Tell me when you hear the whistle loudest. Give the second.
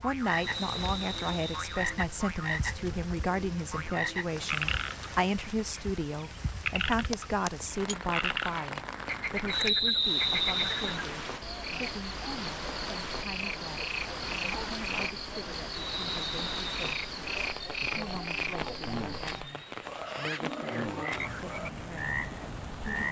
10 s.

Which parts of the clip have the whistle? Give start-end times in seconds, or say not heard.
0.3-1.9, 9.5-11.0, 15.9-16.9.